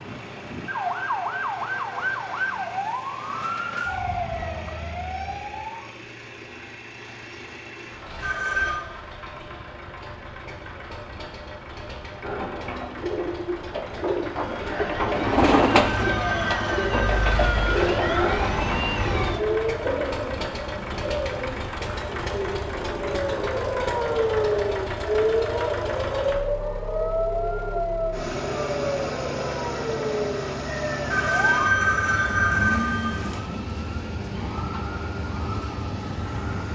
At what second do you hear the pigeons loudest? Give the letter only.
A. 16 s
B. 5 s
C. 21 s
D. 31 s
A.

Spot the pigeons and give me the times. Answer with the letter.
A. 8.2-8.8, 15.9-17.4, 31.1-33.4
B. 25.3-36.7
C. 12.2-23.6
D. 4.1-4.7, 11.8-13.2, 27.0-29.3
C.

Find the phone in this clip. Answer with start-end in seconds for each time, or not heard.
8.2-8.8, 15.9-17.4, 31.1-33.4.